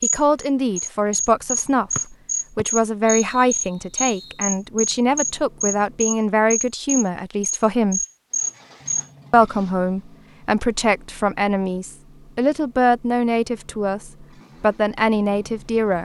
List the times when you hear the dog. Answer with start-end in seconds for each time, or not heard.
not heard.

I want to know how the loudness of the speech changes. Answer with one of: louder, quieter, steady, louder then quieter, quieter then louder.
steady.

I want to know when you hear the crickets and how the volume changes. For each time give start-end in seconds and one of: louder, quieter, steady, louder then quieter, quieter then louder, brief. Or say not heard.
0.0-9.1 steady.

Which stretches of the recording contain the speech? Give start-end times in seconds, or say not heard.
0.0-8.0, 9.3-16.0.